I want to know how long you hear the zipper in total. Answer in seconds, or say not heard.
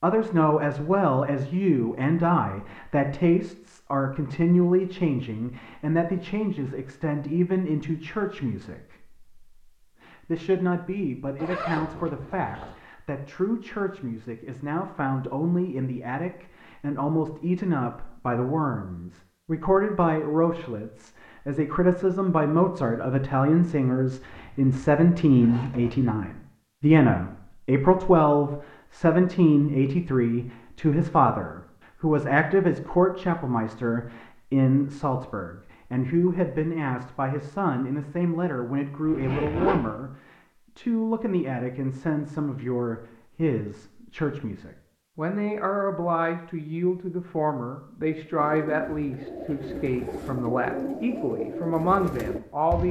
4 s.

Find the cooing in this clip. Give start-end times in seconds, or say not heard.
48.4-52.8.